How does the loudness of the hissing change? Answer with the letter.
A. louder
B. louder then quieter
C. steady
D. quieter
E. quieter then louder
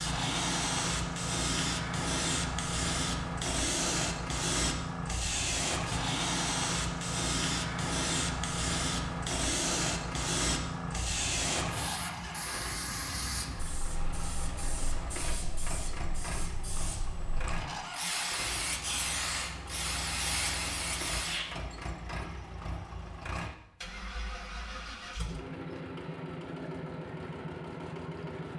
E.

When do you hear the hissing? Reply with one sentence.
You can hear the hissing from 0.0 to 21.4 s.